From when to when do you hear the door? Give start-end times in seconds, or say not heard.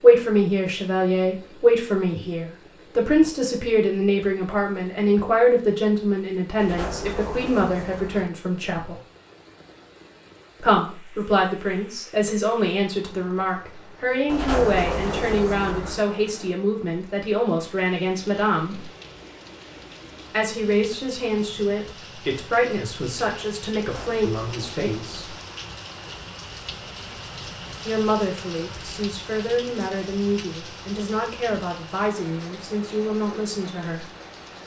6.5-8.3, 14.2-16.0, 23.8-25.4.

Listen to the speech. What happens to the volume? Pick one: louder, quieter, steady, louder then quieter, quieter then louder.
quieter.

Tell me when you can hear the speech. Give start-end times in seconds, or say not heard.
0.0-9.0, 10.6-18.9, 20.3-25.4, 27.9-34.1.